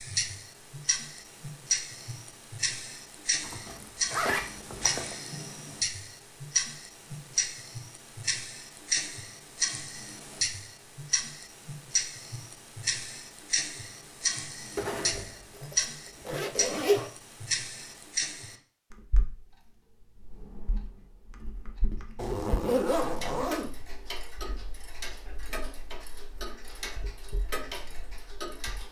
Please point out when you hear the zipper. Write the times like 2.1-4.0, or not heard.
3.4-5.2, 14.8-17.1, 22.1-23.7.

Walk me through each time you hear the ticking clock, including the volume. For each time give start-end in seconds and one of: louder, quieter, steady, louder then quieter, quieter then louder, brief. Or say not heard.
0.0-28.8 quieter.